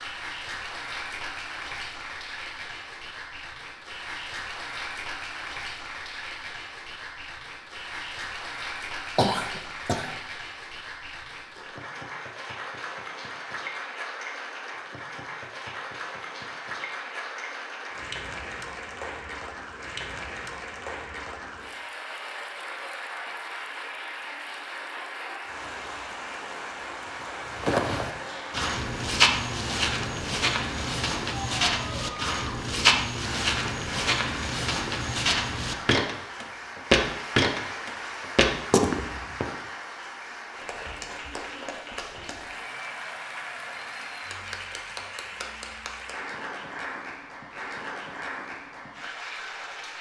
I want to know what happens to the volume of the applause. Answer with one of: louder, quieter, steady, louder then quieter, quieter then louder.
steady.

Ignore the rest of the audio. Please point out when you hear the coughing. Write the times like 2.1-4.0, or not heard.
9.2-10.1.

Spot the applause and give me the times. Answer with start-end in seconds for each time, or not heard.
0.0-49.9.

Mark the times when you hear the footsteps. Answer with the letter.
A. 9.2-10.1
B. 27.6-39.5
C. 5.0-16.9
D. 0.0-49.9
B.